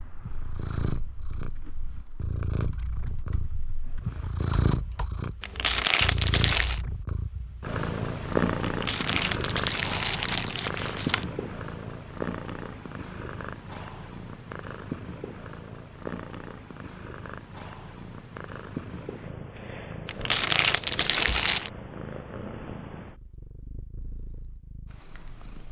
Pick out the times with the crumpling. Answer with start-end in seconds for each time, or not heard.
5.4-6.8, 8.7-11.2, 20.1-21.7.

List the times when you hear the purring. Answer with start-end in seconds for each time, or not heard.
0.0-25.6.